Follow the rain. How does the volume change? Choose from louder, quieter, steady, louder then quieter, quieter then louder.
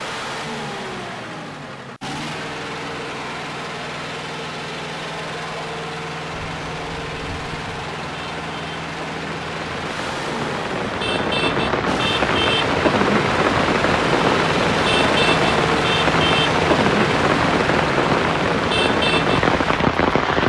louder.